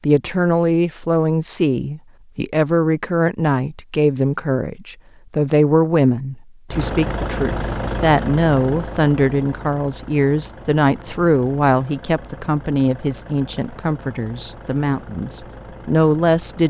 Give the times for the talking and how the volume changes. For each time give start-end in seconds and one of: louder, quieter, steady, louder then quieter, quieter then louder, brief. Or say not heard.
0.0-16.6 steady.